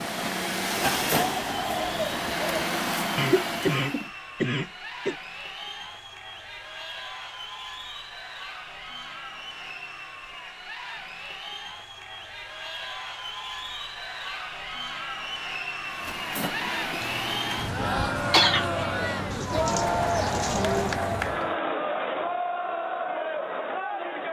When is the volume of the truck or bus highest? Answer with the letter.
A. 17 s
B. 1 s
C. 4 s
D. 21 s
B.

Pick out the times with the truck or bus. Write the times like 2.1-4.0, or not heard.
0.0-4.1, 15.8-21.6.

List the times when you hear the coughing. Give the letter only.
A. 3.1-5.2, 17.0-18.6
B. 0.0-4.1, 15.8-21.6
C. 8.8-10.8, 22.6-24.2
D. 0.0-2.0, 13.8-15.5
A.